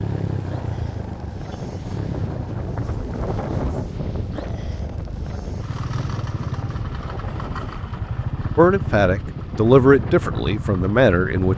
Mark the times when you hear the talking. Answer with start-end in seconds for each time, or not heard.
8.6-11.5.